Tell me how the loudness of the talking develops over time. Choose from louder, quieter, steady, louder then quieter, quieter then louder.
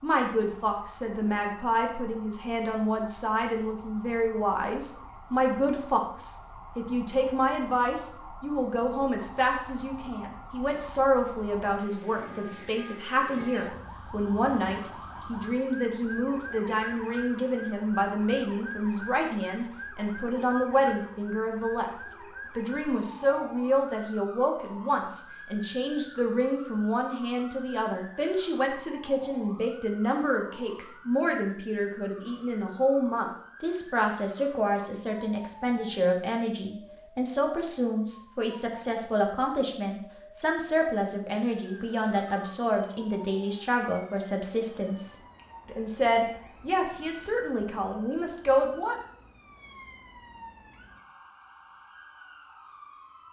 steady.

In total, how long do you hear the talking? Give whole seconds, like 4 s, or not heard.
49 s.